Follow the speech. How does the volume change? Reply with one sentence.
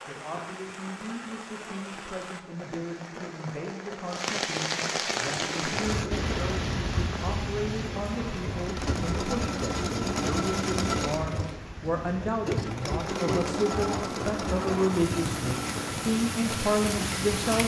The volume of the speech goes up.